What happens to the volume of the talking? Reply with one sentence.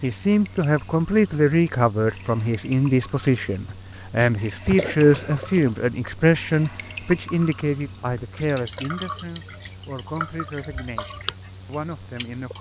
The loudness of the talking goes down.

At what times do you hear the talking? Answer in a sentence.
You can hear the talking from 0.0 to 12.5 s.